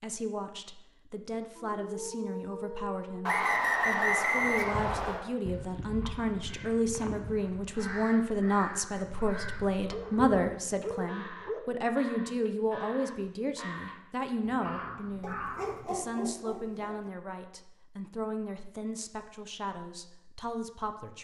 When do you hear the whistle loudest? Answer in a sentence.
The loudest moment of the whistle is at 4 seconds.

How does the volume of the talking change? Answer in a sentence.
The volume of the talking goes up, then down.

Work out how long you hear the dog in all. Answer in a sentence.
You can hear the dog for 5 seconds altogether.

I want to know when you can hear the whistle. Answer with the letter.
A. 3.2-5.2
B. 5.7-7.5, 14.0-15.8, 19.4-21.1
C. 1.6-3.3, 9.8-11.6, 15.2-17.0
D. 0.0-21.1
A.